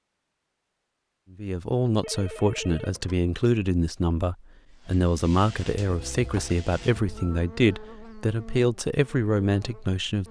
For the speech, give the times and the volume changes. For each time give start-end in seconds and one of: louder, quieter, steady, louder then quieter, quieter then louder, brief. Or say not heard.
1.3-10.2 steady.